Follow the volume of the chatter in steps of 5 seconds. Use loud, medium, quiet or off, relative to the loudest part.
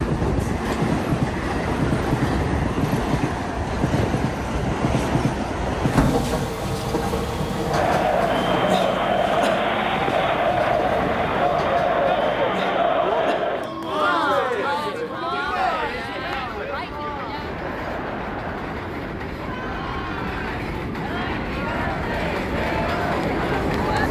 off, loud, loud, medium, medium.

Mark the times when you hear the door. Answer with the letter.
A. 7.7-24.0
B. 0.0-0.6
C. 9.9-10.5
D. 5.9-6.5
D.